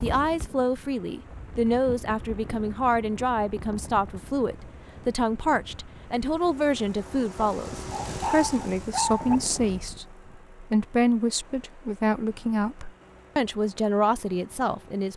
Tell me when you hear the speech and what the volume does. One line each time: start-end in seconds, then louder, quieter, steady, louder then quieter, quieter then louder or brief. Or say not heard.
0.0-15.1 steady.